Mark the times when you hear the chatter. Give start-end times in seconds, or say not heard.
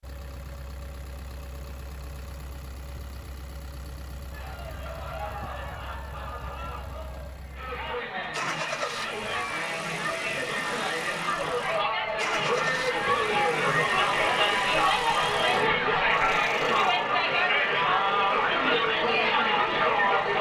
4.3-20.3.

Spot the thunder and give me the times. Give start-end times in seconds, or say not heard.
not heard.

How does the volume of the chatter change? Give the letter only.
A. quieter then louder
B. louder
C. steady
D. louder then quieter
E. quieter
B.